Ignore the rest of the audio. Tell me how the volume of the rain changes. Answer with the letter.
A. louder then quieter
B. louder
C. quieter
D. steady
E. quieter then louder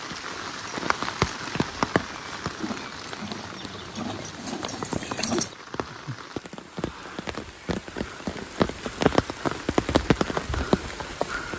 E.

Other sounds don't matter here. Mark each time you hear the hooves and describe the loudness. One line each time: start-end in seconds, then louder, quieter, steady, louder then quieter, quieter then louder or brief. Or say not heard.
0.3-5.5 quieter then louder.